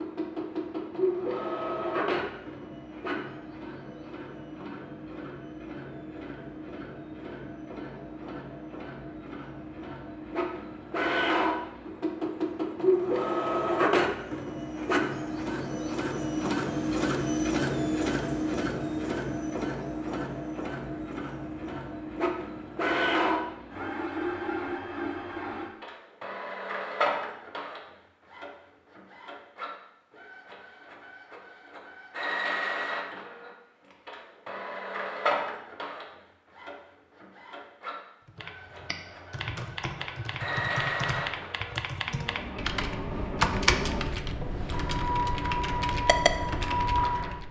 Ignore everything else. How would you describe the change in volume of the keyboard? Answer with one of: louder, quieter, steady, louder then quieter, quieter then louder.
louder.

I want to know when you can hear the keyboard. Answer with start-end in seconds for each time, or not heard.
38.2-47.4.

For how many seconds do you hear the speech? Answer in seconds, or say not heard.
not heard.